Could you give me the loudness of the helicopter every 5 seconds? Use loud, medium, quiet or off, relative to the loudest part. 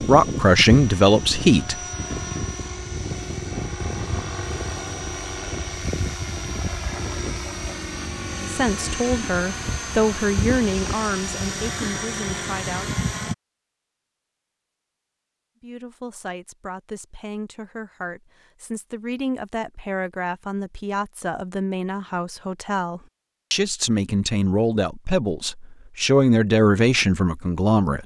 loud, loud, loud, off, off, off.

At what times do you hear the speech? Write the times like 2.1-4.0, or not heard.
0.0-1.8, 8.4-12.9, 15.6-28.0.